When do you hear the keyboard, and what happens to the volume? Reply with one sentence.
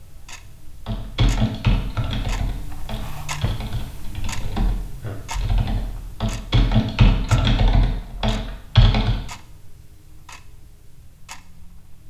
You can hear the keyboard from 0.8 to 9.2 s, getting quieter then louder.